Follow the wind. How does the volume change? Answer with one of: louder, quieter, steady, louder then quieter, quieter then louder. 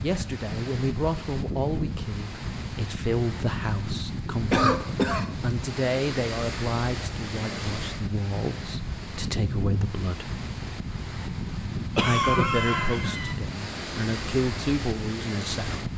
steady.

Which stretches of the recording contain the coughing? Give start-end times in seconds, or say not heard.
4.5-5.3, 11.9-13.3.